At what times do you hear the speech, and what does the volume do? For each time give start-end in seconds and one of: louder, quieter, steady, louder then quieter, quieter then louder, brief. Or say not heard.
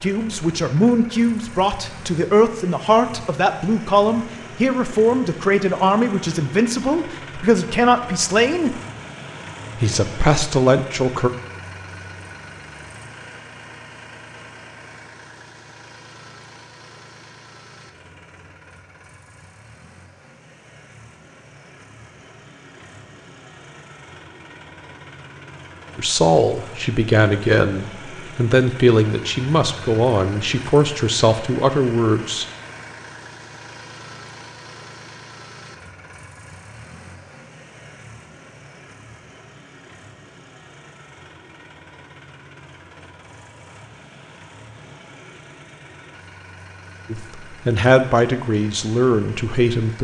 0.0-8.8 steady
9.8-11.3 brief
25.9-32.5 steady
47.1-49.9 brief.